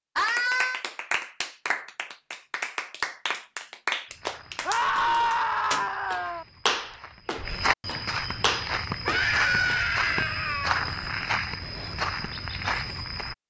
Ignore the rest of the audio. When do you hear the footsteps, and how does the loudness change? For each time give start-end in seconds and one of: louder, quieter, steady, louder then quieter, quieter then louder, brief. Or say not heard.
4.0-13.3 louder.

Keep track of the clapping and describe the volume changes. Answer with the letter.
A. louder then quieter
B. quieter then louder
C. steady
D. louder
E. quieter
C.